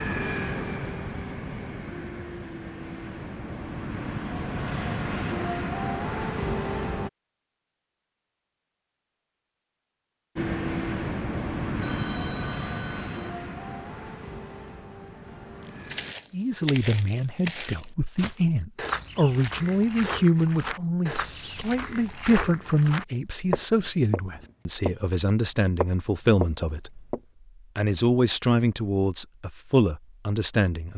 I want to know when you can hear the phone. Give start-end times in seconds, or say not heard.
11.8-13.3.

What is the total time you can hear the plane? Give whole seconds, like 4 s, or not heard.
13 s.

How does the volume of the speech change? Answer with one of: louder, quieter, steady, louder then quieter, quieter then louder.
steady.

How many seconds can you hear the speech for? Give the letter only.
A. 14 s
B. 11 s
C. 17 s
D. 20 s
A.